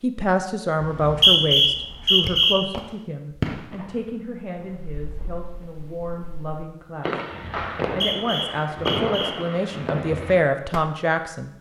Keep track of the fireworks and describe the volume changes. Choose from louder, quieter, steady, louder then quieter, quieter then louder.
quieter then louder.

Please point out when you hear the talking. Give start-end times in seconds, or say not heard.
0.0-7.2, 8.0-11.5.